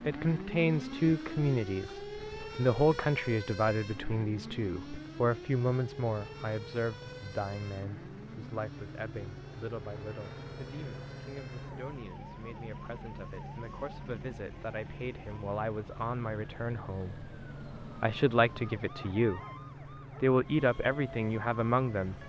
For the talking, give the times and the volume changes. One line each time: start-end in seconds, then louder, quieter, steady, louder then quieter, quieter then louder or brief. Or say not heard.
0.1-19.4 quieter then louder
20.2-22.1 brief.